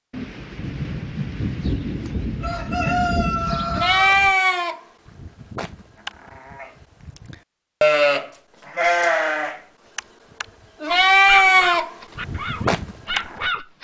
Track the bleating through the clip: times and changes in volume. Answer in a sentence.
The bleating can be heard from 3.8 to 13.4 s, getting quieter then louder.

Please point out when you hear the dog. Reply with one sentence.
You can hear the dog from 10.8 to 13.7 s.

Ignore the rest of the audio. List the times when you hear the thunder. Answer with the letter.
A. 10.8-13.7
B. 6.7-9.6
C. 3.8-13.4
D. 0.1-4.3
D.